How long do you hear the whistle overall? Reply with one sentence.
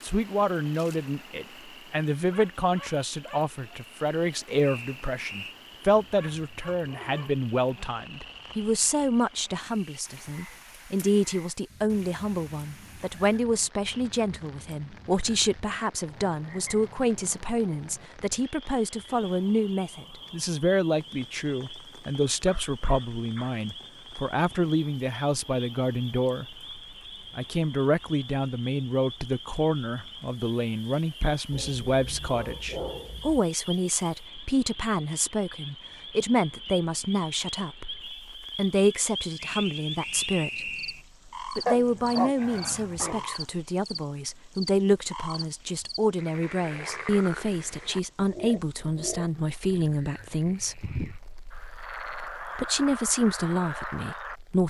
You can hear the whistle for 3 seconds altogether.